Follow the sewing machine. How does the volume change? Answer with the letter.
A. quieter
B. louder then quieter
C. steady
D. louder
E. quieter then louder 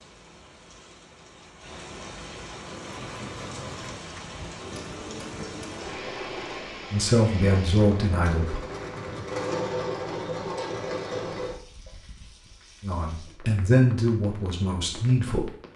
D.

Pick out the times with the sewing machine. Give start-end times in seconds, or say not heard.
2.5-11.9.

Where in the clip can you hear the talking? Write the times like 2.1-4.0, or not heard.
6.9-8.6, 12.8-15.5.